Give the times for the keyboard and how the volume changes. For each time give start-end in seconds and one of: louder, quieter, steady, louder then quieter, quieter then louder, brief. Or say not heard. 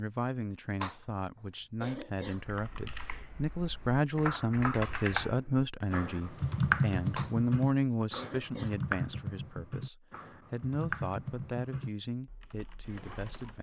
2.2-13.5 louder then quieter.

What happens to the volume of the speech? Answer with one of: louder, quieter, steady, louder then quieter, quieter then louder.
louder then quieter.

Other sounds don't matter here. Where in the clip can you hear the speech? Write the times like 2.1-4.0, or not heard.
0.0-13.5.